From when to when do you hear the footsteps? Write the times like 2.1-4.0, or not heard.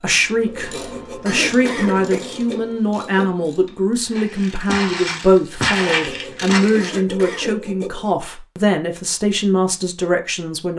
4.1-7.0.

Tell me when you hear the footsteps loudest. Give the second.
6 s.